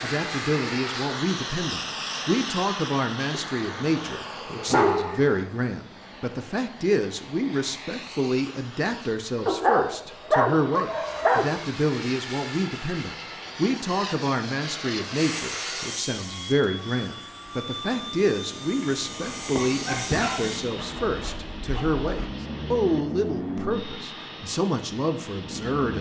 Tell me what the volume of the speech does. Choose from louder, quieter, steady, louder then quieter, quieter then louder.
steady.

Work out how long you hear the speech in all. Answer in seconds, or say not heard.
26 s.